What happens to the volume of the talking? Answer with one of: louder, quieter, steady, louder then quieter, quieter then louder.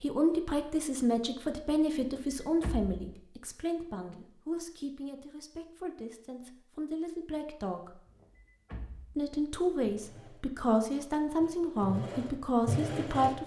quieter then louder.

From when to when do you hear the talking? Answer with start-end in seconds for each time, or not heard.
0.0-8.0, 9.2-13.4.